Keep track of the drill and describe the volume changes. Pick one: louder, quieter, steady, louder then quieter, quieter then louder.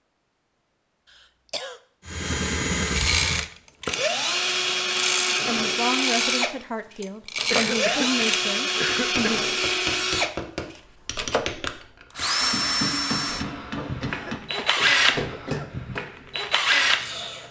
steady.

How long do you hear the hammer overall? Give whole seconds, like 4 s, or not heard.
7 s.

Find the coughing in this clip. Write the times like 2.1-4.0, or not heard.
1.1-1.8, 7.5-9.3, 13.8-15.7.